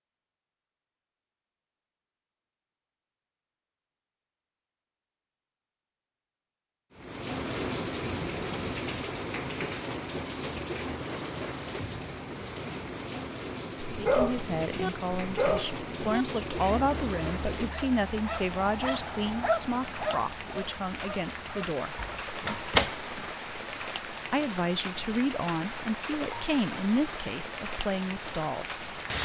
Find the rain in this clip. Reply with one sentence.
You can hear the rain from 7.0 to 29.2 s.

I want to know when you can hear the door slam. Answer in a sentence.
You can hear the door slam from 22.4 to 23.2 s.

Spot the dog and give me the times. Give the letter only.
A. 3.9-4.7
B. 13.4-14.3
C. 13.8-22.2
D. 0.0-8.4
C.